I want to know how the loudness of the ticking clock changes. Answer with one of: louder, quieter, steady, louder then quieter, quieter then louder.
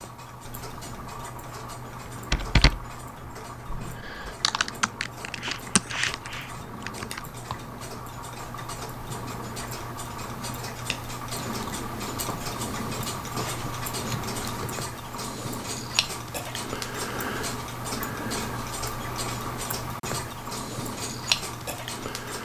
louder.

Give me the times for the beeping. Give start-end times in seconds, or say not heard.
not heard.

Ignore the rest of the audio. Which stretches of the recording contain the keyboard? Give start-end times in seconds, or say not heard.
2.3-2.9, 3.6-7.2.